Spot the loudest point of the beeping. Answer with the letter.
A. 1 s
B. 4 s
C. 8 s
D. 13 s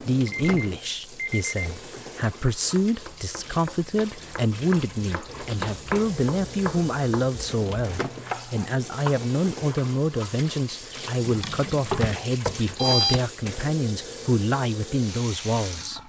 D.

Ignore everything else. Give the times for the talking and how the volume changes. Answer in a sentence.
The talking can be heard from 0.0 to 16.0 s, at a steady volume.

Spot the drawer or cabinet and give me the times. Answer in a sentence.
You can hear the drawer or cabinet from 11.2 to 12.2 s.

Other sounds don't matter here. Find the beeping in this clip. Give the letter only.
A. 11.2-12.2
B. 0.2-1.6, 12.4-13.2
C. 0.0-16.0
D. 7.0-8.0
B.